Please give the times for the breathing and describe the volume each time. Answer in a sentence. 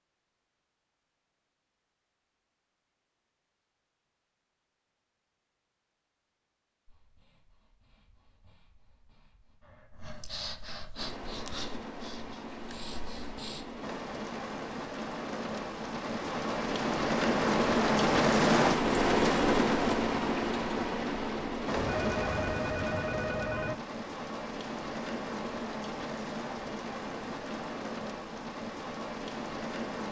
You can hear the breathing from 6.8 to 13.7 s, getting louder then quieter.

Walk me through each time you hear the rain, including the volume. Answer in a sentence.
You can hear the rain from 10.9 to 30.0 s, getting louder then quieter.